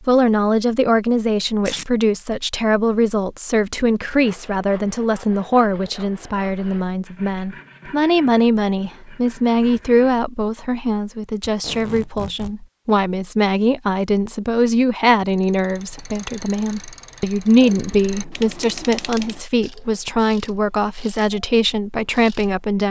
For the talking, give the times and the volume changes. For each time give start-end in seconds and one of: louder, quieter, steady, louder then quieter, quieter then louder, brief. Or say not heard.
0.1-22.8 steady.